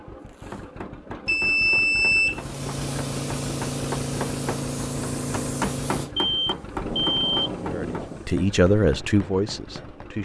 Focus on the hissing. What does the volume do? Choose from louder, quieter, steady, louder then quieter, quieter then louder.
quieter.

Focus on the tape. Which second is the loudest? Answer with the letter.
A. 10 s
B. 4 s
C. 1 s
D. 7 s
D.